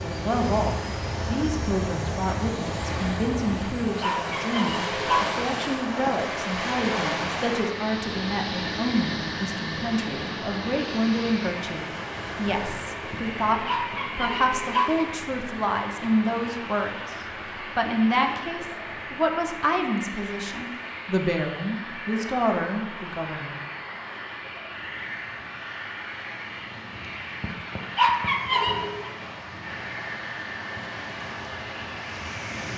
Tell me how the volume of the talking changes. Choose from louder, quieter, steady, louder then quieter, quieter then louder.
steady.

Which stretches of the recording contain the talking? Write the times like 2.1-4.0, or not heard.
0.0-17.1, 17.8-23.6.